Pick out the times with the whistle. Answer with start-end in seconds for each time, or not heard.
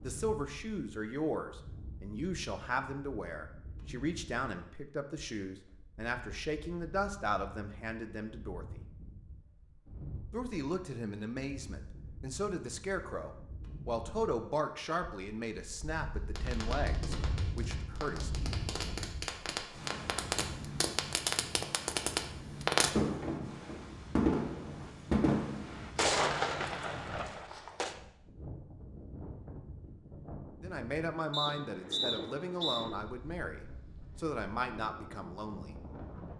31.3-32.9.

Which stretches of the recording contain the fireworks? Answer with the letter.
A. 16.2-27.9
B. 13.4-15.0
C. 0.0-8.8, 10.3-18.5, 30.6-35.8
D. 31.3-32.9
A.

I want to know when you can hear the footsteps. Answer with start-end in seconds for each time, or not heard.
not heard.